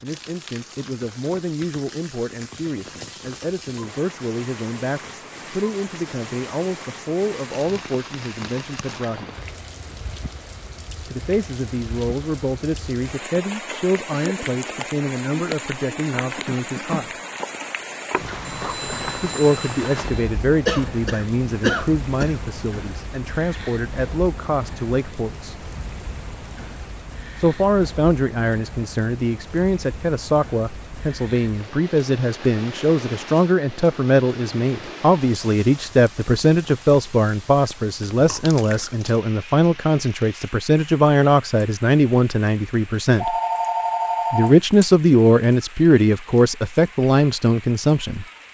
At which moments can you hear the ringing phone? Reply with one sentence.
The ringing phone can be heard from 18.4 to 20.1 s and from 43.1 to 44.9 s.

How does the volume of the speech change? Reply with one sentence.
The volume of the speech goes up.